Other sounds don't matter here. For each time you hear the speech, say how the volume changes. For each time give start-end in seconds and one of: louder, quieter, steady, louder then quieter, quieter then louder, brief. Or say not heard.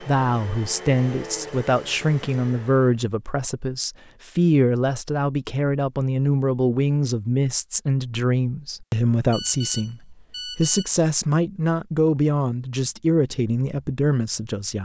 0.0-14.7 steady.